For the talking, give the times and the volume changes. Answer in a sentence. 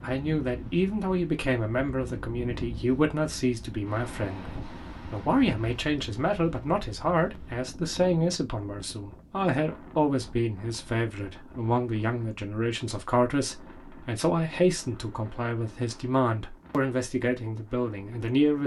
You can hear the talking from 0.0 to 18.6 s, at a steady volume.